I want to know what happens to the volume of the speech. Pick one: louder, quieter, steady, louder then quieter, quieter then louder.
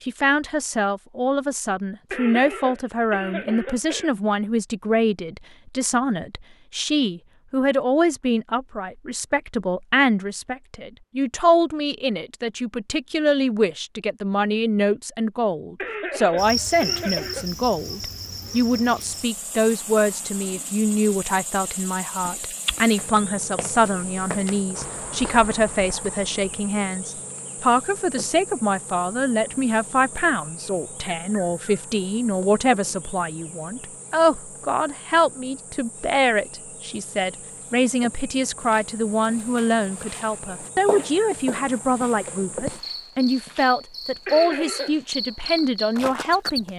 steady.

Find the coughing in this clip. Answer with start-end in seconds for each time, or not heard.
2.1-4.1, 15.8-17.5, 44.2-45.0.